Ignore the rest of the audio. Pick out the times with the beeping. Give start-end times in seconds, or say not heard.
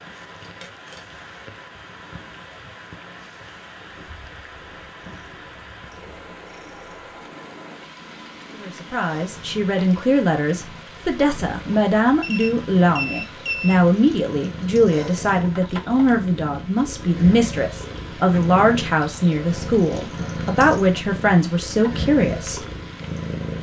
12.2-13.8.